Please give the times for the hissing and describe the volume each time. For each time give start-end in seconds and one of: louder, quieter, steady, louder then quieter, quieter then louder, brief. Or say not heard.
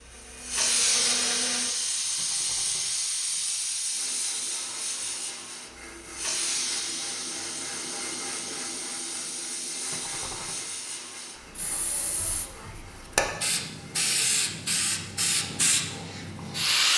0.1-16.9 quieter then louder.